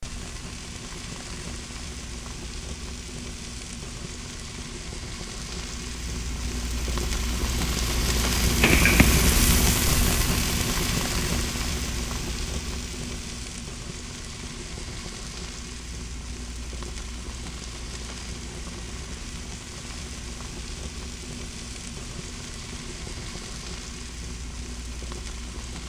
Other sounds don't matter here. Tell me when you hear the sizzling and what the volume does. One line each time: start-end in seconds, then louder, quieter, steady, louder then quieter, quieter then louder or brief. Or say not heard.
0.0-25.8 louder then quieter.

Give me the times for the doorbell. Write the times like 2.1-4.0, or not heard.
8.6-9.3.